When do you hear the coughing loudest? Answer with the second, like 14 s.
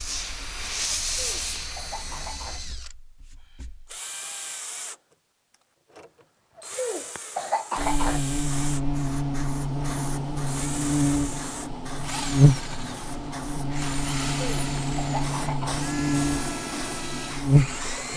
8 s.